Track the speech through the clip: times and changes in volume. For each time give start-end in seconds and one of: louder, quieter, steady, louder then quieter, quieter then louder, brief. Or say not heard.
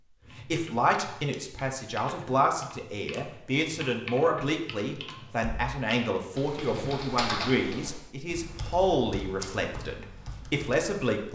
0.3-11.3 steady.